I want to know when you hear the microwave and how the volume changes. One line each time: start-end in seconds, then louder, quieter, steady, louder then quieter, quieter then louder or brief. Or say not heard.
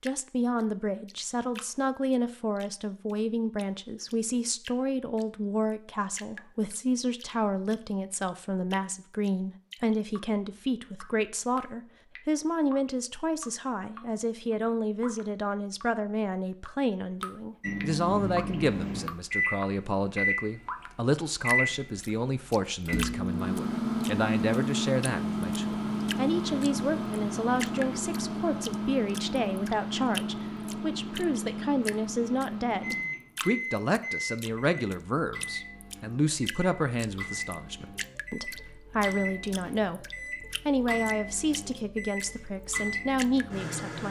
17.6-44.0 quieter.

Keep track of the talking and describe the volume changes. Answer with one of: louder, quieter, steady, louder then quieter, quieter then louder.
steady.